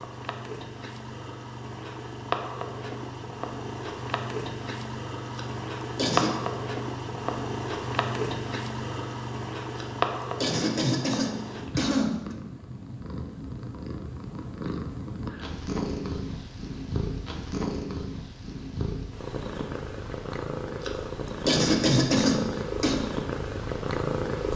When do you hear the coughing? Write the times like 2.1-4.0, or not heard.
5.3-6.3, 9.8-12.3, 20.8-23.1.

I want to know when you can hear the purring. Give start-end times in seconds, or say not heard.
0.0-24.5.